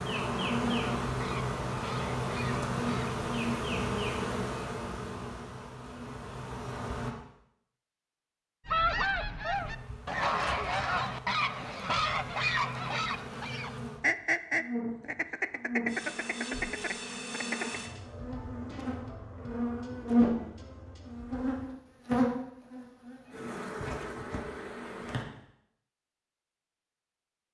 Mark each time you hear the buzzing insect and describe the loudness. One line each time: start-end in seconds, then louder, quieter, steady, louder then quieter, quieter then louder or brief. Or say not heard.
0.0-7.1 quieter
9.5-25.2 louder.